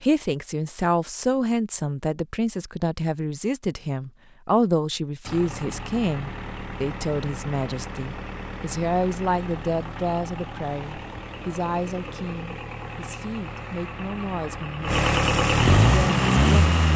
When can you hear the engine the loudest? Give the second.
16 s.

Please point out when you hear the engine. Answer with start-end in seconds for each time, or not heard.
5.2-16.9.